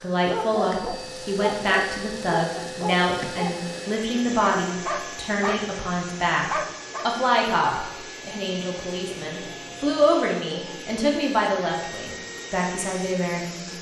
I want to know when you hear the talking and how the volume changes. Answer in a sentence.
You can hear the talking from 0.0 to 13.7 s, at a steady volume.